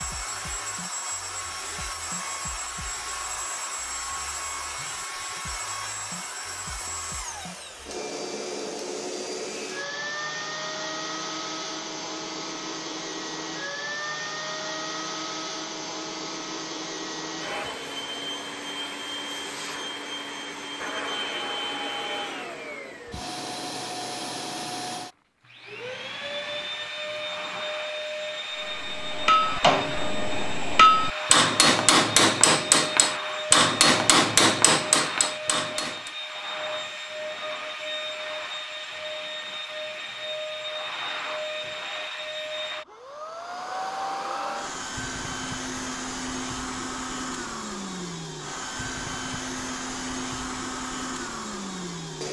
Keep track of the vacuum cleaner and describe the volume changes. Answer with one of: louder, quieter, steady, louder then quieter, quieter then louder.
steady.